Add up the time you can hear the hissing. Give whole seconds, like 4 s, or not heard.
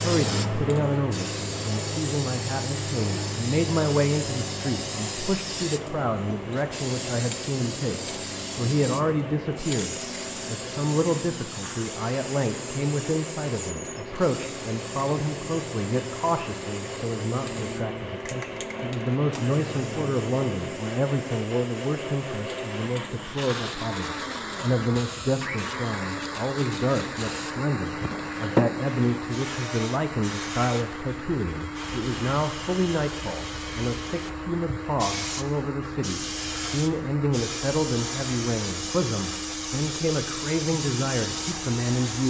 42 s.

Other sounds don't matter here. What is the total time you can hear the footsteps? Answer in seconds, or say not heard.
not heard.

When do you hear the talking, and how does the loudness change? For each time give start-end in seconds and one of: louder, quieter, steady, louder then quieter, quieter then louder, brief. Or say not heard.
0.0-42.2 steady.